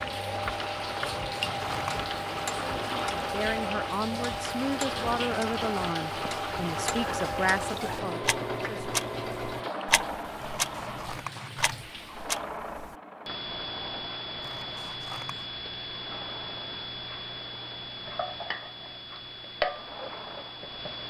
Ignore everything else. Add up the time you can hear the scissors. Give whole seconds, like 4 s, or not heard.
4 s.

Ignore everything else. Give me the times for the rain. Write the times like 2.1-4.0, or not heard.
0.0-12.4.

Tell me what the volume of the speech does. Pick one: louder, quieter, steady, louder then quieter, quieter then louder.
steady.